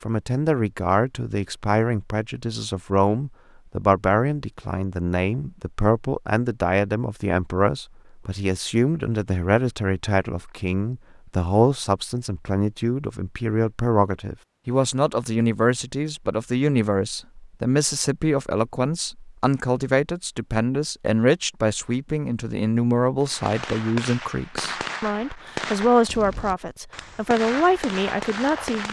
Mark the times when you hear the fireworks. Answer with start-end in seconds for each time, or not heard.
23.2-28.8.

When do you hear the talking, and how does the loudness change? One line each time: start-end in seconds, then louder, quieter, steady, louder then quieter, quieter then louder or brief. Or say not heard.
0.0-28.8 steady.